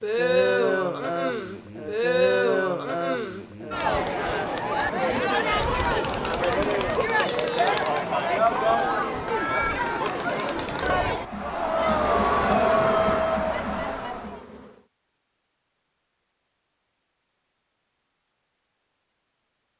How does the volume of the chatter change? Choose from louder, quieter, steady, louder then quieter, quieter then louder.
steady.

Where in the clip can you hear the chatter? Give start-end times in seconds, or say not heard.
0.0-14.4.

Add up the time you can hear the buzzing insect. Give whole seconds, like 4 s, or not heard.
3 s.